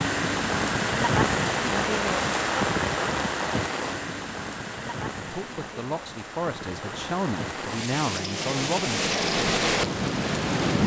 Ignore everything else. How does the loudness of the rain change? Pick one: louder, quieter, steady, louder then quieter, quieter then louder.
quieter then louder.